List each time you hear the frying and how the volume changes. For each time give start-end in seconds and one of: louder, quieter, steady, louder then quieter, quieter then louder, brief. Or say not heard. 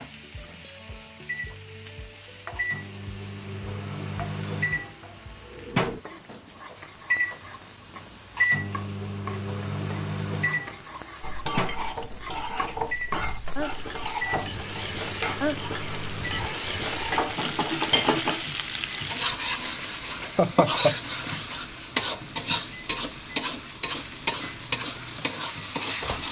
0.0-26.2 louder.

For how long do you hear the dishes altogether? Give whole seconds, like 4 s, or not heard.
7 s.